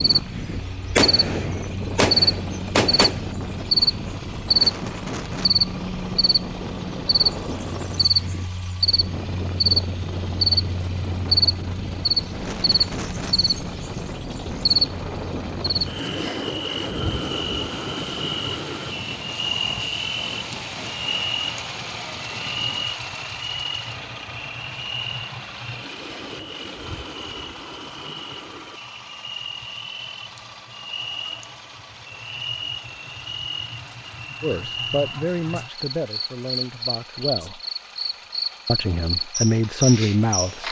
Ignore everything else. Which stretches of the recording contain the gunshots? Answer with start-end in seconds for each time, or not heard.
0.8-3.2.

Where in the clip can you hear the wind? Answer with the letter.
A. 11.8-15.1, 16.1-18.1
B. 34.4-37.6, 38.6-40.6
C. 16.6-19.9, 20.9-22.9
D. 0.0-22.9
D.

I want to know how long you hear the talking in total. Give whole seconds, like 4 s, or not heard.
5 s.